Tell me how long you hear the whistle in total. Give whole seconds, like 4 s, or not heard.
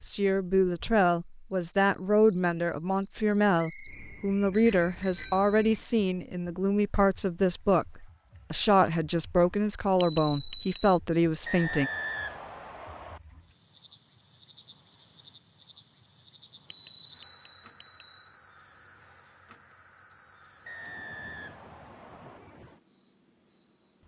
4 s.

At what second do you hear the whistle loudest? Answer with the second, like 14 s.
12 s.